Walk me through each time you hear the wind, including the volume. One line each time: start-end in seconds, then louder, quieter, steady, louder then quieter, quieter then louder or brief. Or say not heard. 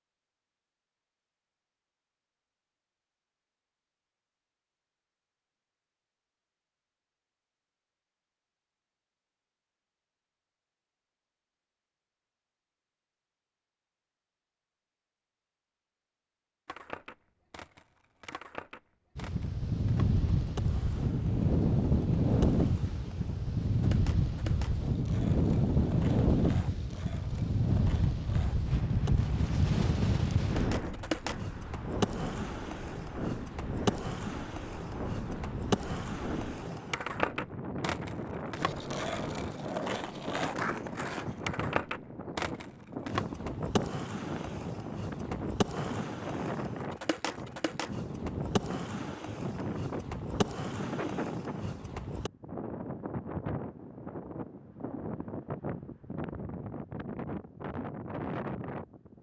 19.1-59.1 quieter.